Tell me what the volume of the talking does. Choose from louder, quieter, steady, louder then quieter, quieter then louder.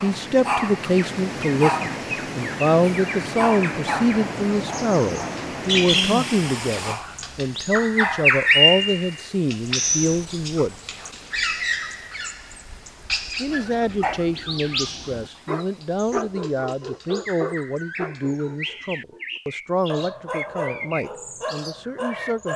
quieter.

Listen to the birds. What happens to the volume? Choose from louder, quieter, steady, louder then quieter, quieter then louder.
louder then quieter.